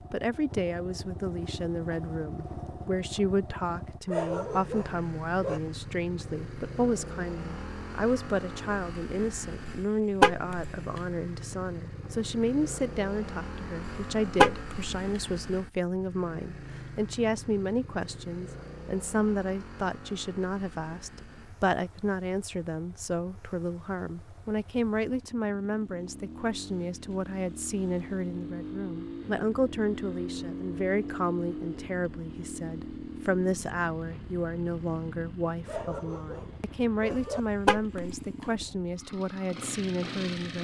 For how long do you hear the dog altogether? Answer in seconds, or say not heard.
3 s.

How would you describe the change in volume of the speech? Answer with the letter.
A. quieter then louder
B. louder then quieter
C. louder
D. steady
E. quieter
D.